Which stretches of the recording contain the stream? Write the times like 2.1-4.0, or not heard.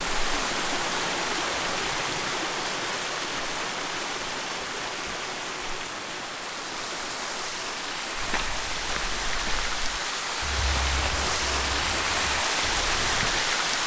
0.0-13.8.